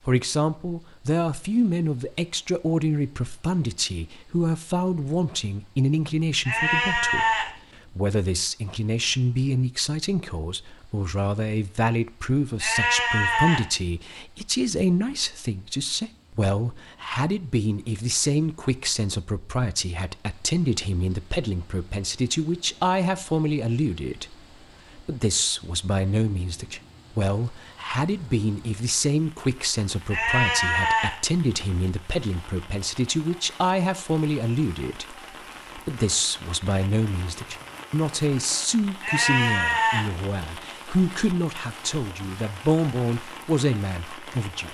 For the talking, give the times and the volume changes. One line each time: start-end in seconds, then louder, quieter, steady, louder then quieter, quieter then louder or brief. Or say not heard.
0.1-44.7 steady.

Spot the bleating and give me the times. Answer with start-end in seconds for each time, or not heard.
6.5-7.5, 12.6-13.7, 30.1-31.1, 39.0-40.1.